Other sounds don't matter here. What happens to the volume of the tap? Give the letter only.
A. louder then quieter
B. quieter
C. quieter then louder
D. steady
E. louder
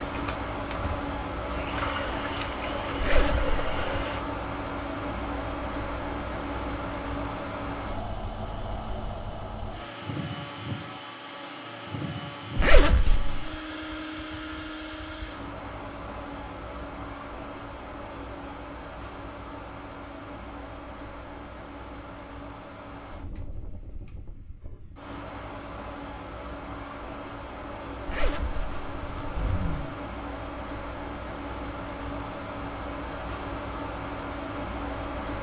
E.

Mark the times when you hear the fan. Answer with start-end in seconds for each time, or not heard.
0.0-35.3.